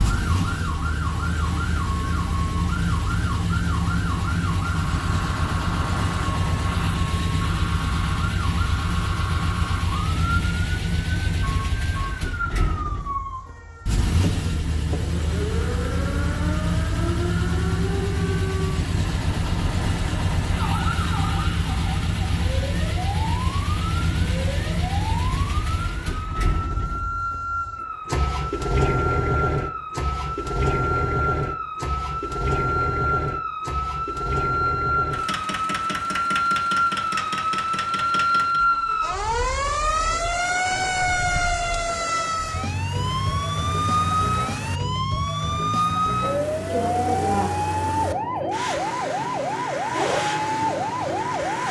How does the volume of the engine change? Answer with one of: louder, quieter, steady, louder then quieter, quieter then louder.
quieter.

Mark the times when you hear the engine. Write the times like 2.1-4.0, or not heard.
0.0-51.6.